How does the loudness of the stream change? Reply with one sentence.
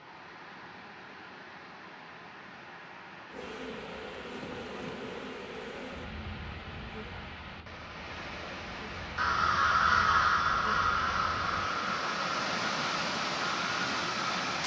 The volume of the stream goes up.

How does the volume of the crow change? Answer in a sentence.
The volume of the crow goes down.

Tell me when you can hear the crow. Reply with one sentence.
You can hear the crow from 9.2 to 14.6 s.